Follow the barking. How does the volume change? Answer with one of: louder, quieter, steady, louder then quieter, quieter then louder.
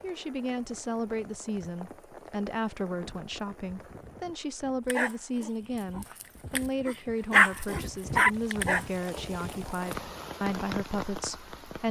louder then quieter.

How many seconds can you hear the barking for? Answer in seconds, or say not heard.
5 s.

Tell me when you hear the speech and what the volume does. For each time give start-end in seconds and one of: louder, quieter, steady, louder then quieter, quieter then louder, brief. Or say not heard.
0.0-11.8 steady.